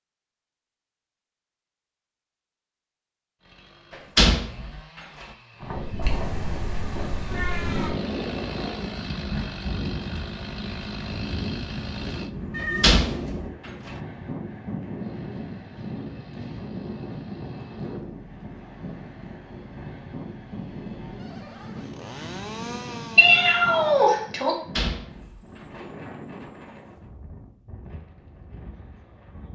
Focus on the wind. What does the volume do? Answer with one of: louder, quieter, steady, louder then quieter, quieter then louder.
quieter.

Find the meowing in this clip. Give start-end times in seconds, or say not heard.
6.0-7.9, 12.5-13.3, 23.1-24.6.